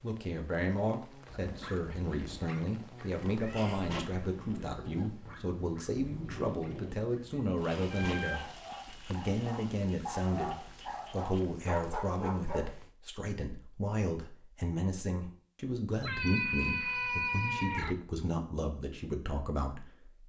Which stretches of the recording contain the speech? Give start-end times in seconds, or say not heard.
0.0-20.2.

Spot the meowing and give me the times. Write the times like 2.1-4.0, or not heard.
3.4-4.7, 7.9-8.6, 16.0-17.9.